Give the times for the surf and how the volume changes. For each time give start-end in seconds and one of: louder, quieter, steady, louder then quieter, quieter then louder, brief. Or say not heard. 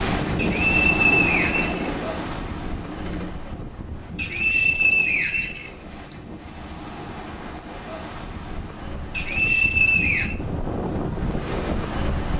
0.0-12.3 quieter then louder.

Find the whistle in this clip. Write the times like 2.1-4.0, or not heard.
0.3-2.4, 4.2-6.2, 9.2-10.3.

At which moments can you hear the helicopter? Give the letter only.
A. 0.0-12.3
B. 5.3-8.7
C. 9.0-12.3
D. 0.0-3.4
D.